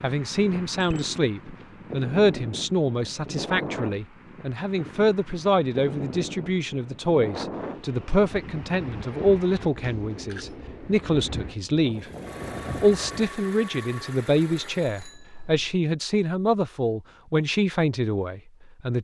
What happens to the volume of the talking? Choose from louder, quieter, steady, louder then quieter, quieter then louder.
steady.